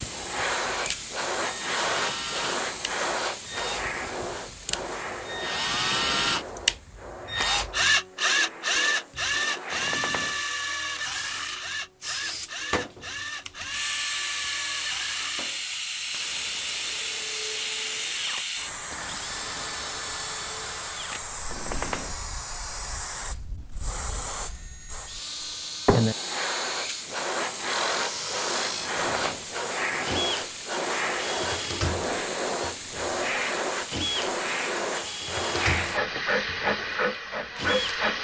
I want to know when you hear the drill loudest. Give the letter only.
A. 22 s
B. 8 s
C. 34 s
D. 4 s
B.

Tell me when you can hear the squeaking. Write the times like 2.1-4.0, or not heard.
9.7-10.4, 21.4-22.2, 28.8-29.5.